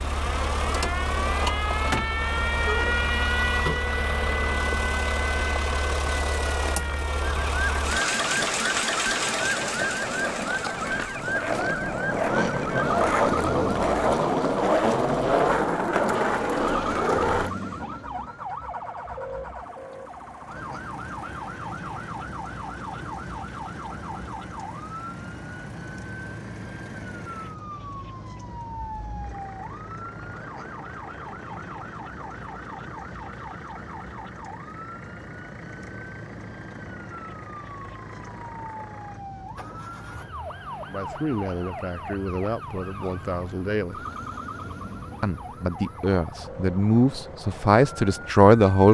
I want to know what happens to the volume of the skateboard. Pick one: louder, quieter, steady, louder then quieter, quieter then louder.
louder.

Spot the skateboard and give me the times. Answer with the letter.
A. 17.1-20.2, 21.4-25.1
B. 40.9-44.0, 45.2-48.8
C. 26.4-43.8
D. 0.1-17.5
D.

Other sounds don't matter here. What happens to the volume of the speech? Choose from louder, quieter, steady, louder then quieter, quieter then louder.
louder.